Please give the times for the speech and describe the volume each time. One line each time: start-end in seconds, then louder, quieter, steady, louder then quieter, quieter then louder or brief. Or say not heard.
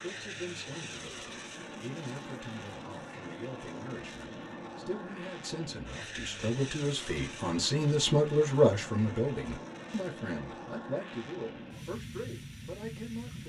0.0-13.4 louder then quieter.